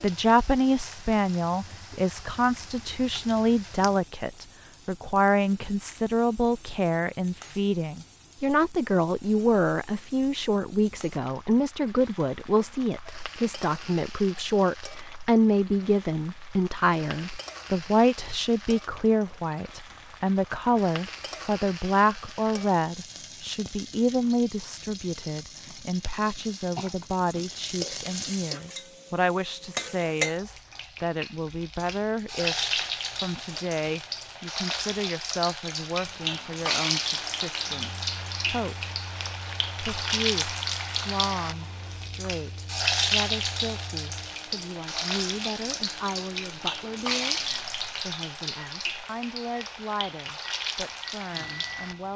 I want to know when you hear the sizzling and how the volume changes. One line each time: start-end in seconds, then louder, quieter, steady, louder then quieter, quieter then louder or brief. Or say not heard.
0.0-52.1 louder.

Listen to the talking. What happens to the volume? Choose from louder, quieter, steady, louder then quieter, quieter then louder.
quieter.